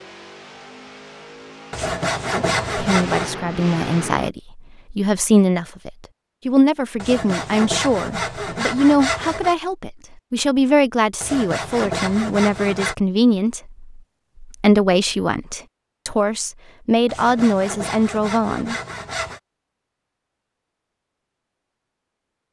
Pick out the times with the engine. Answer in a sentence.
You can hear the engine from 0.0 to 4.3 s.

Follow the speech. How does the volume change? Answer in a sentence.
The loudness of the speech stays about the same.